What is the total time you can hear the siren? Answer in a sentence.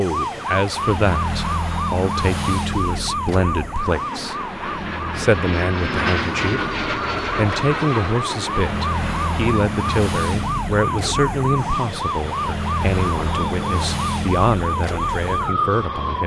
The siren can be heard for 16 seconds in total.